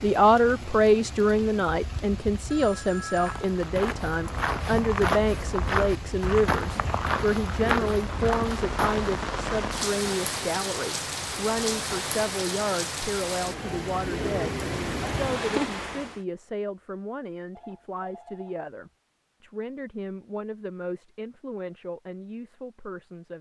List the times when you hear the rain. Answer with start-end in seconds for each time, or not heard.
0.0-16.2.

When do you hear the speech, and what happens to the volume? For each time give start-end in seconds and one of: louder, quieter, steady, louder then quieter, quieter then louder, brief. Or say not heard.
0.0-23.3 quieter.